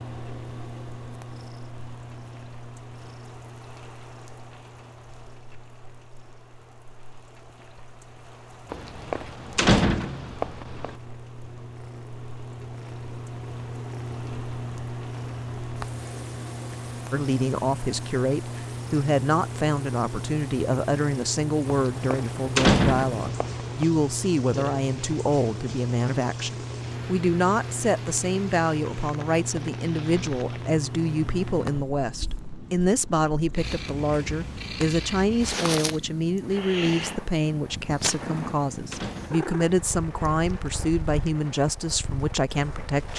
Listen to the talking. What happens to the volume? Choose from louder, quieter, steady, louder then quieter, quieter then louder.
steady.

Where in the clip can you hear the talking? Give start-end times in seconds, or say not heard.
17.1-43.1.